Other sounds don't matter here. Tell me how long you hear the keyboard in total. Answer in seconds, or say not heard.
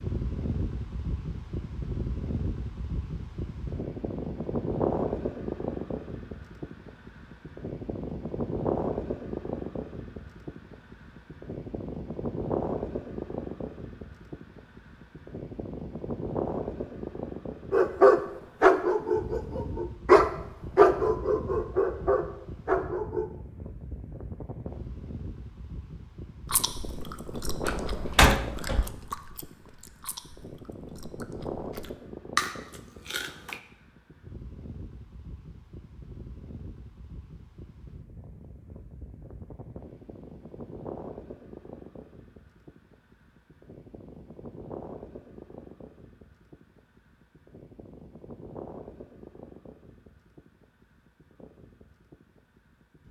not heard.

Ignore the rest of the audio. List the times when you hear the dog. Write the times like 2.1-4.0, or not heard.
17.7-23.2.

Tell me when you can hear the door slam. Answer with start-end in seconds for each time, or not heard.
27.6-28.9.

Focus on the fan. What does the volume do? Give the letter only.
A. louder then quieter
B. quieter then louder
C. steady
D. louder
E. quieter
E.